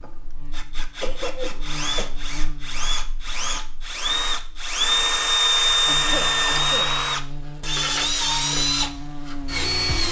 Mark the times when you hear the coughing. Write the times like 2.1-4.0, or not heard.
1.0-2.1, 5.8-6.9.